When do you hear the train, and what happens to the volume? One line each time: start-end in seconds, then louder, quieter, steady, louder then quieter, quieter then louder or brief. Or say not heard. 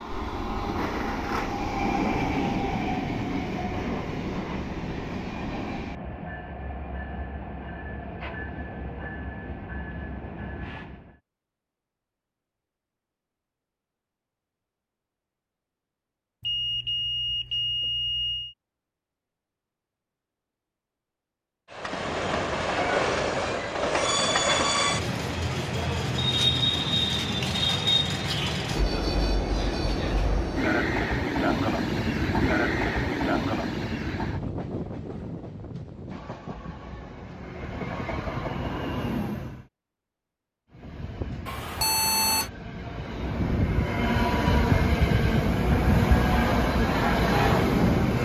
0.0-11.2 quieter
21.7-39.6 quieter
40.7-48.2 louder.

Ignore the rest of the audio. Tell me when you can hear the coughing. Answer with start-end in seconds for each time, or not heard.
not heard.